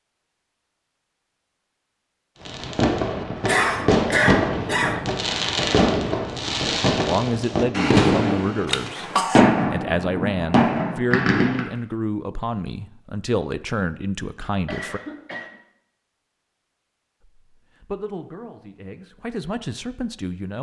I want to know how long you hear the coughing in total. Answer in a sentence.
The coughing can be heard for 3 seconds in total.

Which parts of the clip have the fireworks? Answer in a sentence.
The fireworks can be heard from 2.5 to 11.7 s.